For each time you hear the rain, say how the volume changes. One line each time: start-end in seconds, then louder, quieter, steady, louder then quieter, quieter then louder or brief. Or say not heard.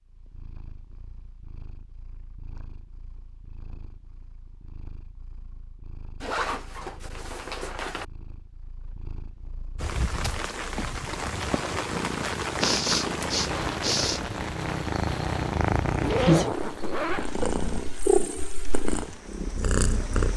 9.8-20.3 quieter.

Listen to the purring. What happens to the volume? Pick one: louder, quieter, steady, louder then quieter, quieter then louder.
louder.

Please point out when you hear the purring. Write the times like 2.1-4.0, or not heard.
0.0-20.3.